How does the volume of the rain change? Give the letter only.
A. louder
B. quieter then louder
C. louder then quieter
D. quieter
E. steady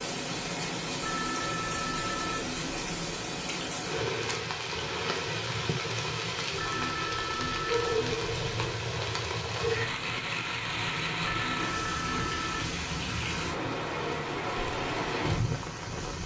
E.